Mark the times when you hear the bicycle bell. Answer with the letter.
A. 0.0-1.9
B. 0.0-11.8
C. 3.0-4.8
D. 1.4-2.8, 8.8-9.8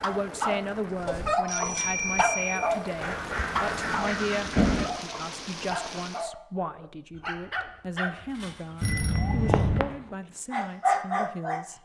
D.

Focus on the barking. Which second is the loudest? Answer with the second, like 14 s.
11 s.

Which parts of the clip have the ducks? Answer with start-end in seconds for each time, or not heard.
3.0-4.8.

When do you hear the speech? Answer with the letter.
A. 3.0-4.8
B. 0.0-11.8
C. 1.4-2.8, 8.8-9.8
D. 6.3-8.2
B.